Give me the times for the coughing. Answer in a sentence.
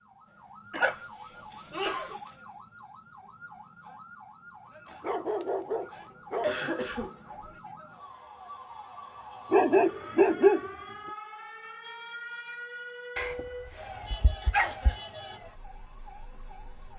You can hear the coughing from 0.7 to 2.1 s, from 6.4 to 7.5 s and from 14.4 to 15.1 s.